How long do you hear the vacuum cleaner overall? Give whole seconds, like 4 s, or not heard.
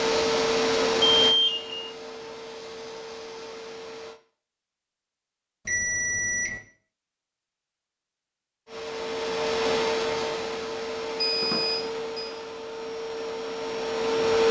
10 s.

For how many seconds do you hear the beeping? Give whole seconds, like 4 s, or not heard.
3 s.